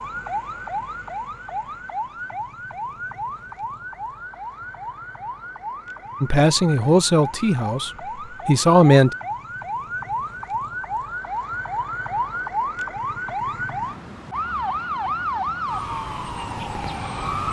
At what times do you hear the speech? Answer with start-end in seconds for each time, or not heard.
6.2-9.1.